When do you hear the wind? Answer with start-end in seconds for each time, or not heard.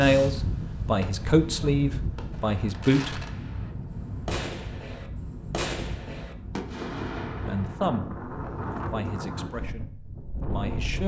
0.0-11.0.